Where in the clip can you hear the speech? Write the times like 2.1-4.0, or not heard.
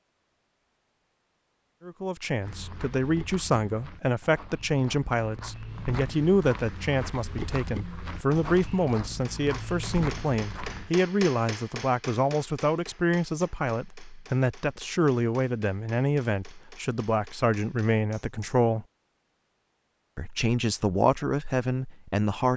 1.9-18.9, 20.1-22.5.